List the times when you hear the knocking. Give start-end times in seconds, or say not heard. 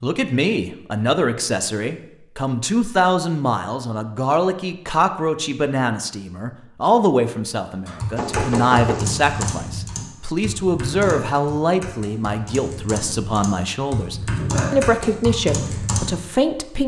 8.2-9.6.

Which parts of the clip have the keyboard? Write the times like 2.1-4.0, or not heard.
7.8-16.1.